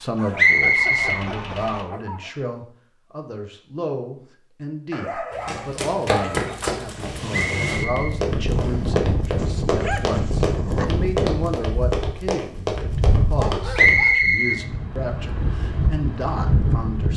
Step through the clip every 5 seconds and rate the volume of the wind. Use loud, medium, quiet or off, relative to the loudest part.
off, loud, loud, loud.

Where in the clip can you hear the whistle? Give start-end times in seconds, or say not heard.
0.3-1.2, 7.3-8.8, 13.8-14.6.